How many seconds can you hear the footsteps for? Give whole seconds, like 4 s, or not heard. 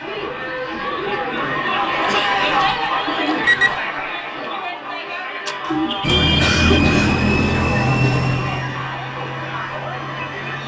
not heard.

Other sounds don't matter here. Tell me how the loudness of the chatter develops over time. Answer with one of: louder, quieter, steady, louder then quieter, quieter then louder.
quieter.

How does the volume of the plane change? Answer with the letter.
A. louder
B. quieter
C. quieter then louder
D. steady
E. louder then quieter
B.